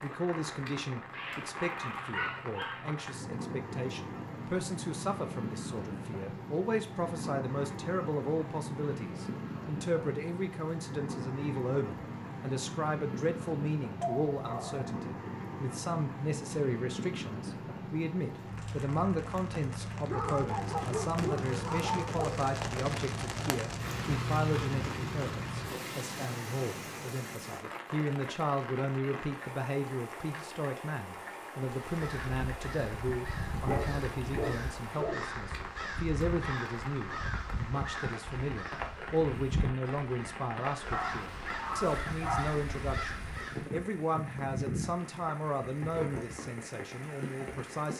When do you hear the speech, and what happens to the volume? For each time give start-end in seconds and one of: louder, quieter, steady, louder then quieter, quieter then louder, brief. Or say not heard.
0.0-47.9 steady.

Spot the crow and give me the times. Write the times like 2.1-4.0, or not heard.
31.7-43.7.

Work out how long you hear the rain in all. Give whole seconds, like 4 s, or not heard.
48 s.